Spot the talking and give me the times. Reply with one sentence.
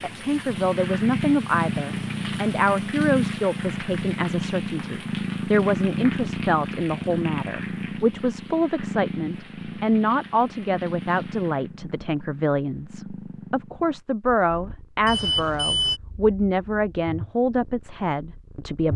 You can hear the talking from 0.0 to 18.9 s.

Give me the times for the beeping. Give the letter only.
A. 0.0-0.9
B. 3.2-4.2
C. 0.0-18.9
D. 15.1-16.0
D.